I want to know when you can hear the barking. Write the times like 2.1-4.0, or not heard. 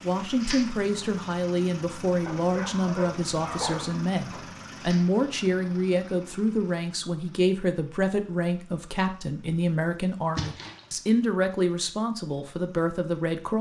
2.2-4.5.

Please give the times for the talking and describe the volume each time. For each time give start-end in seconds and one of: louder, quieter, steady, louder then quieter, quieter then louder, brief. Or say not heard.
0.0-13.5 steady.